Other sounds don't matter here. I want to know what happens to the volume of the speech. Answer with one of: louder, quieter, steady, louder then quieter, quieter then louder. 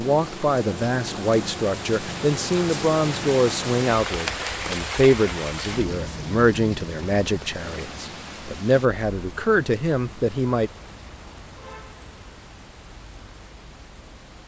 steady.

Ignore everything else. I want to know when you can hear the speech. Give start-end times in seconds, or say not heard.
0.0-10.7.